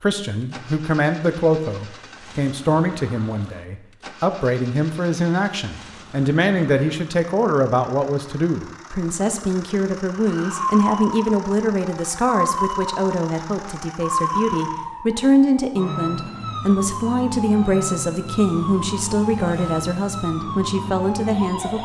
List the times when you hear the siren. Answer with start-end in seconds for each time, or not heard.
10.1-21.8.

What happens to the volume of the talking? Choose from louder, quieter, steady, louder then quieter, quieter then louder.
steady.